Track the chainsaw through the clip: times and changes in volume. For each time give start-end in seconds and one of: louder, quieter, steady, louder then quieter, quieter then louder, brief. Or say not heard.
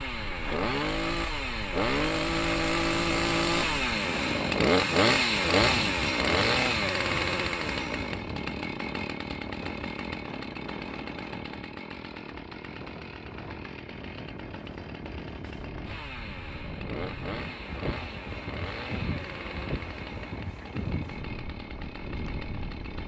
0.0-23.0 quieter.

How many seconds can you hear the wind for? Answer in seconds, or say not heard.
23 s.